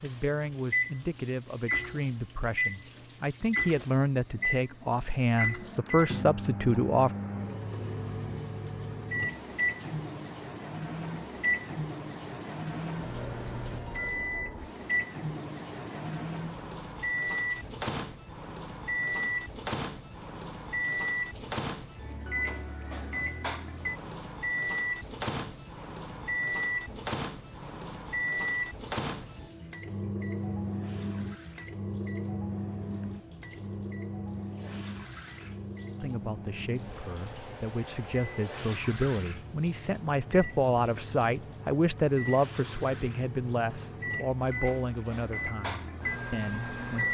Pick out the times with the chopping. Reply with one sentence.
You can't hear the chopping here.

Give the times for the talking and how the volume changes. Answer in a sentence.
You can hear the talking from 0.0 to 7.1 s, getting louder; and from 36.0 to 47.0 s, getting louder then quieter.